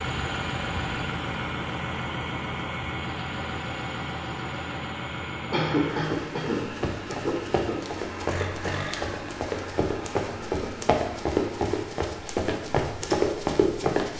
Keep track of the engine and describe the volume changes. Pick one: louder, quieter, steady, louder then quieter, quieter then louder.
quieter.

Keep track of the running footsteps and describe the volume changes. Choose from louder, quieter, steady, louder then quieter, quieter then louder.
louder.